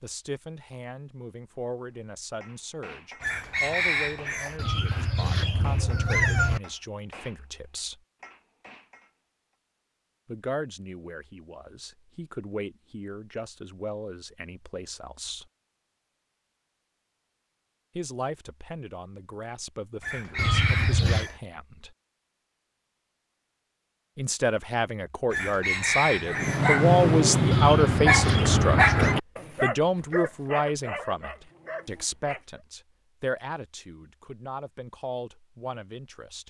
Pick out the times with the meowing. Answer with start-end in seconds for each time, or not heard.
4.5-6.6, 20.4-21.3, 27.5-29.1.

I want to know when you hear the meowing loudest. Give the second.
6 s.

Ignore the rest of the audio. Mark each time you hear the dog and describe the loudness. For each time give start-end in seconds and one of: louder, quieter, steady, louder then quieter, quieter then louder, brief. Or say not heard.
26.2-32.4 quieter.